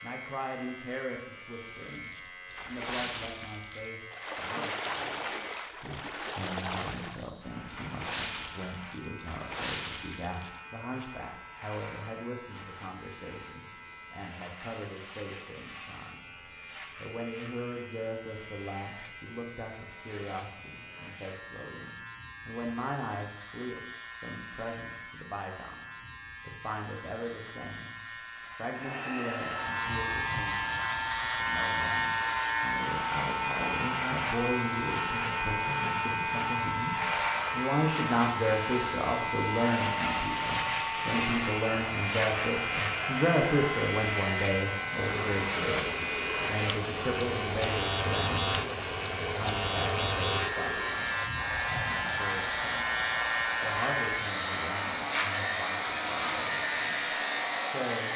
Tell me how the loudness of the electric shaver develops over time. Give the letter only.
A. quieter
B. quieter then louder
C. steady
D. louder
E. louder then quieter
D.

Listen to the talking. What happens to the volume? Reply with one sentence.
The loudness of the talking goes up, then down.